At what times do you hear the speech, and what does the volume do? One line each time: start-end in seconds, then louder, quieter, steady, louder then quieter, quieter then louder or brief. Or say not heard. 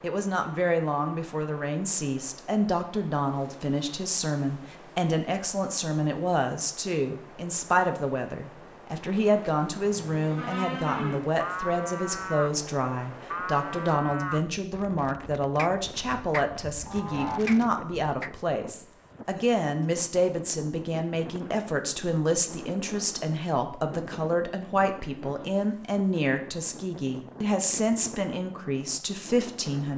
0.0-29.9 steady.